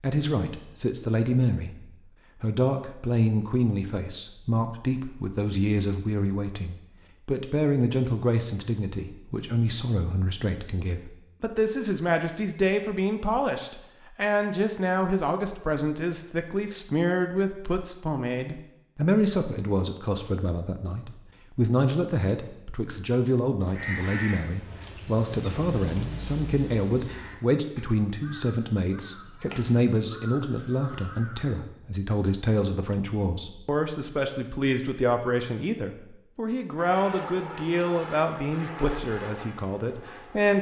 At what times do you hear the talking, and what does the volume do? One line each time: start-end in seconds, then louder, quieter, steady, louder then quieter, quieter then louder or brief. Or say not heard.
0.0-40.5 steady.